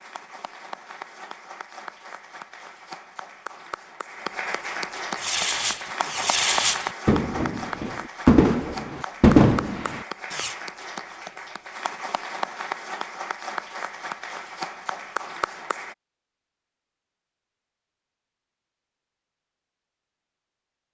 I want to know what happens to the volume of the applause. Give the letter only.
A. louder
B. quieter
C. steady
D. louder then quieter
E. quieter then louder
A.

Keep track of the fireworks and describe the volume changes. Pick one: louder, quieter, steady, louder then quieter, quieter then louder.
louder.